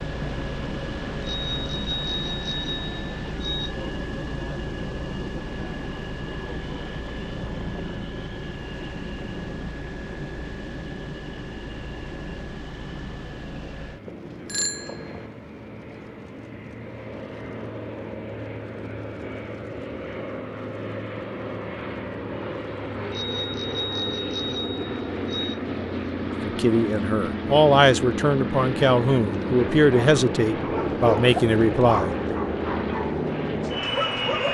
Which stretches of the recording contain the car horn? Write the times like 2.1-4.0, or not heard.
not heard.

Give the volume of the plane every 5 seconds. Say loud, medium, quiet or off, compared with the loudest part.
medium, medium, medium, medium, medium, loud, loud.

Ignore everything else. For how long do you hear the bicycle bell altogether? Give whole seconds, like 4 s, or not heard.
6 s.